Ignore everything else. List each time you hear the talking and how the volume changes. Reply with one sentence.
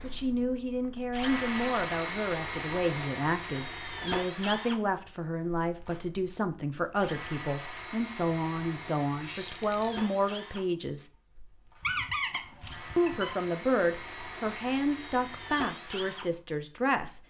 You can hear the talking from 0.0 to 11.1 s, at a steady volume; and from 12.9 to 17.2 s, getting quieter.